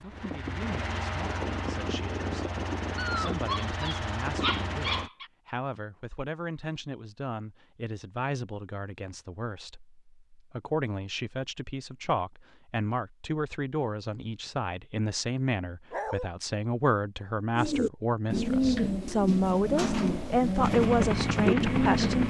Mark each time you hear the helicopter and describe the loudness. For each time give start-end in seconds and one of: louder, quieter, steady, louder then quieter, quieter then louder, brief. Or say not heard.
0.0-5.1 steady
20.6-22.2 brief.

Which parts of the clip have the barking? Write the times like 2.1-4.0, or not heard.
3.0-5.2, 15.9-16.3.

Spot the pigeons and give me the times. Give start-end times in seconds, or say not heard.
17.6-22.2.